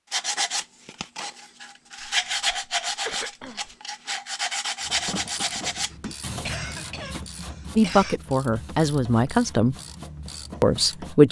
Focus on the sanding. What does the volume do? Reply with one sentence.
The volume of the sanding goes down.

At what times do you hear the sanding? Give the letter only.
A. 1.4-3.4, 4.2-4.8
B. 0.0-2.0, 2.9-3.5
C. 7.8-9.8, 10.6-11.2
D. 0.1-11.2
D.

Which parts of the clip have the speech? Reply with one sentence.
The speech can be heard from 7.8 to 9.8 s and from 10.6 to 11.2 s.